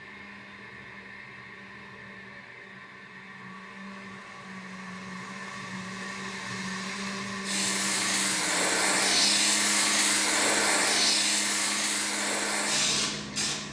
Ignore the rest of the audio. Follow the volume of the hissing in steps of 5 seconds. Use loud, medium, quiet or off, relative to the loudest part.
off, loud, loud.